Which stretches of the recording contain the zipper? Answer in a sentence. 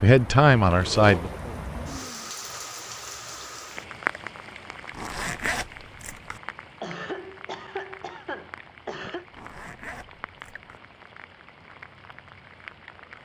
The zipper can be heard from 0.6 to 1.4 s, from 4.9 to 6.4 s and from 9.3 to 10.8 s.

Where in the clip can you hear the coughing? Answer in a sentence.
You can hear the coughing from 6.8 to 9.2 s.